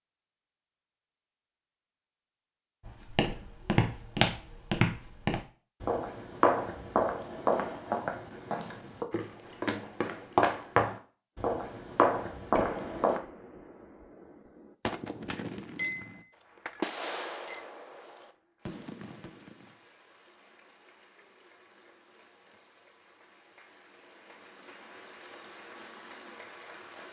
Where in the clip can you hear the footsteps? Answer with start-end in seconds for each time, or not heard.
2.9-13.2.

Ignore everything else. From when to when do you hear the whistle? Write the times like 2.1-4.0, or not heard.
not heard.